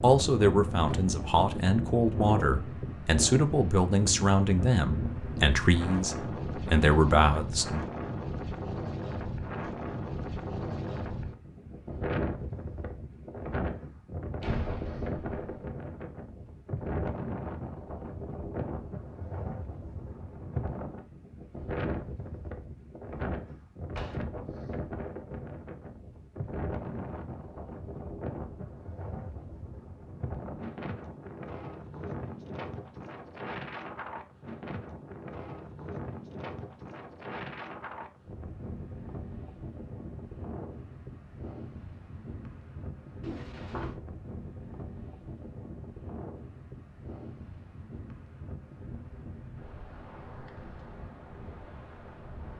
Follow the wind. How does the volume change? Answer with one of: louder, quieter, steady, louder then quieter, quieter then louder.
quieter.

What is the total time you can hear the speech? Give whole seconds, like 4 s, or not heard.
8 s.